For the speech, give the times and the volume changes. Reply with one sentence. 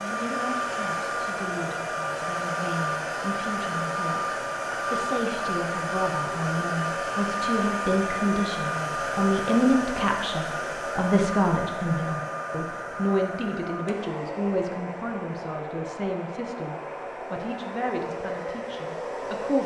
The speech can be heard from 0.0 to 19.6 s, getting louder then quieter.